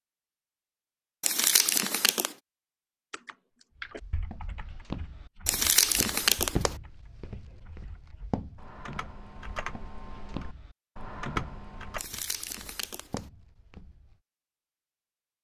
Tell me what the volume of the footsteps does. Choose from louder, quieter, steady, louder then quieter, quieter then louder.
quieter.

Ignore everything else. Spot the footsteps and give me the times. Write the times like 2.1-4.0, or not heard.
3.8-14.2.